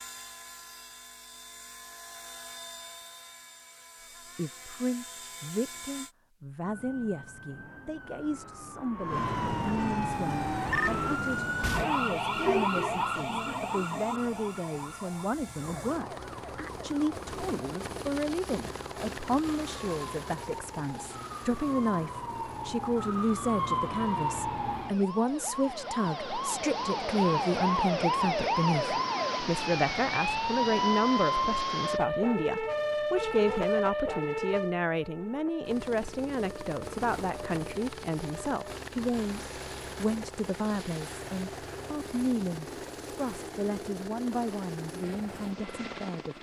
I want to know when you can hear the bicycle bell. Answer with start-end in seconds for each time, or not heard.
not heard.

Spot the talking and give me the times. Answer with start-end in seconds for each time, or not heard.
4.3-46.3.